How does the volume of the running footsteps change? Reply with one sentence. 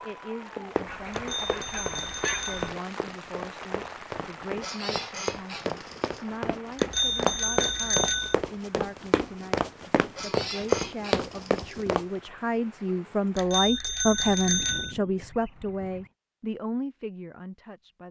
The volume of the running footsteps goes up.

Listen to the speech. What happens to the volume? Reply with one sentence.
The loudness of the speech goes up.